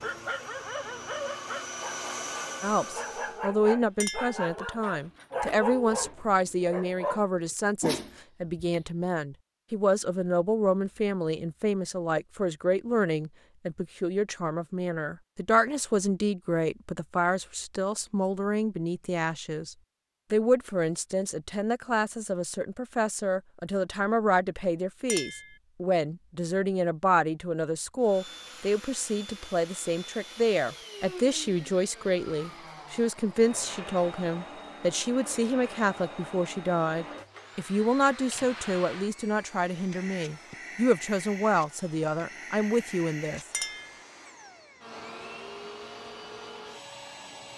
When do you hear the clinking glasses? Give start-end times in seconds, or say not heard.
4.0-4.5, 25.1-25.6, 43.5-44.0.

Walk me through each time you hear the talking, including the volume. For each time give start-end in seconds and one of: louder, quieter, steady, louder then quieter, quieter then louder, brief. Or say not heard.
2.6-43.5 steady.